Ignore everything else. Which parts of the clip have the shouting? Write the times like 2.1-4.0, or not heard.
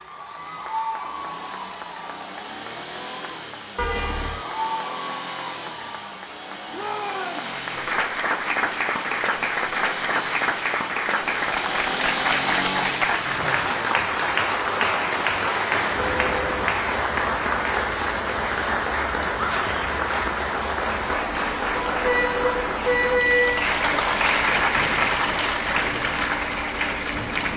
6.7-7.5, 19.3-19.8.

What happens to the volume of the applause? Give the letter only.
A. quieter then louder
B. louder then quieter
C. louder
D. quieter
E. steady
C.